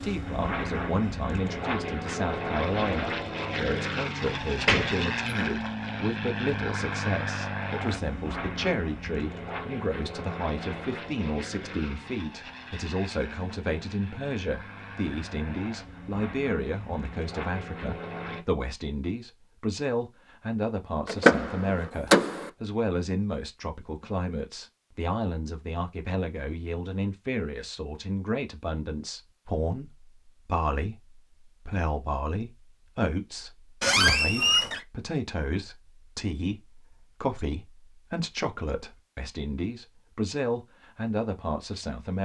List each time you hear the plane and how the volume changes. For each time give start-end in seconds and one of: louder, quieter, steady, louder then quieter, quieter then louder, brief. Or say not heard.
0.0-18.4 quieter.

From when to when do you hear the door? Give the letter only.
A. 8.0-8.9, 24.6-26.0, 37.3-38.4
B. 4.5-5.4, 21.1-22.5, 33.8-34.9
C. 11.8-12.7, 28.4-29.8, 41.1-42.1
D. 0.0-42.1
B.